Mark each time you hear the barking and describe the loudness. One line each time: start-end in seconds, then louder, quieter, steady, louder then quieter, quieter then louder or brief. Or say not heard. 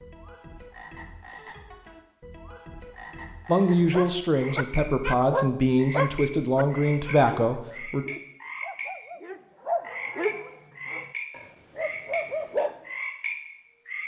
3.9-12.8 quieter then louder.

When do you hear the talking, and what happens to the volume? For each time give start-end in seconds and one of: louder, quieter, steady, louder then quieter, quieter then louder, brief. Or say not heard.
3.5-8.1 steady.